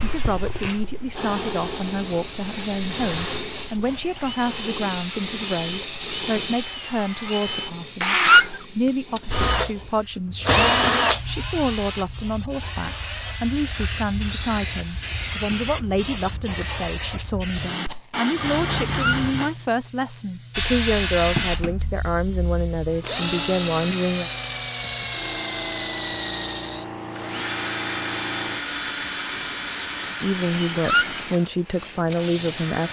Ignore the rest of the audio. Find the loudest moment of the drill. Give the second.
11 s.